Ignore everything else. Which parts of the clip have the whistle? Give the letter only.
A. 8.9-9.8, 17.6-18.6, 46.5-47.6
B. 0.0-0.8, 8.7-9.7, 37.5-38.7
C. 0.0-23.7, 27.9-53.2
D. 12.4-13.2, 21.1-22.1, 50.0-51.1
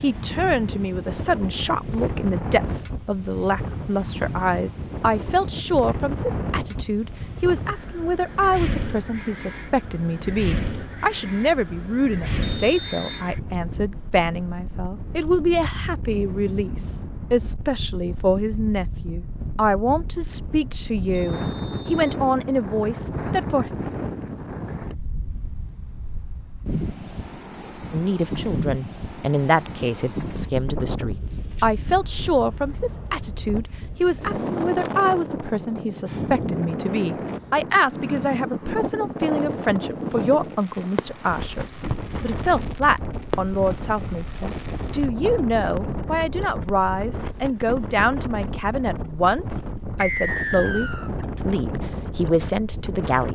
D.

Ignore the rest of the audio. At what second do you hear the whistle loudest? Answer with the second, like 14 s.
50 s.